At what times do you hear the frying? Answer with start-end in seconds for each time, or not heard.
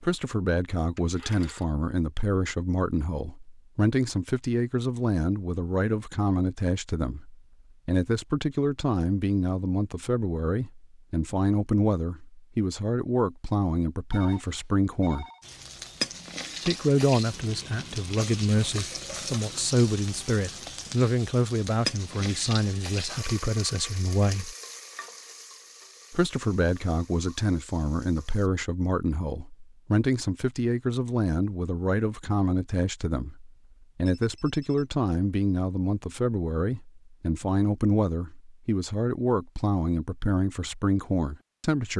15.4-28.5.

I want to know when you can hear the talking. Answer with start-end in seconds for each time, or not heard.
0.0-15.2, 16.6-24.6, 26.1-41.9.